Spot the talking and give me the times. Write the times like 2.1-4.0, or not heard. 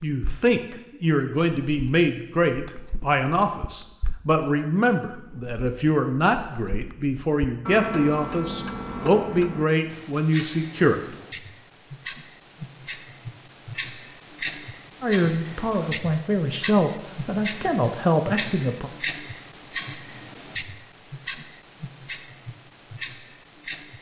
0.0-11.2, 15.0-18.9.